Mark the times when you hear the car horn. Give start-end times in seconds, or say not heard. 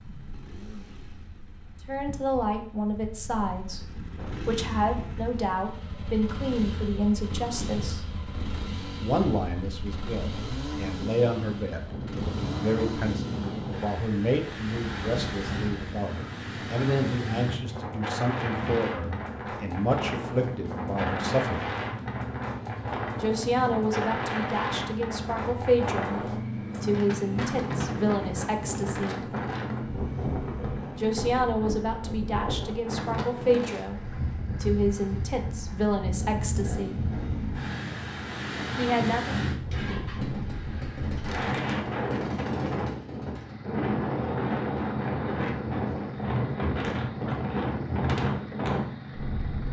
not heard.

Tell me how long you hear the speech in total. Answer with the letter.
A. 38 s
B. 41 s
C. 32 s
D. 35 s
C.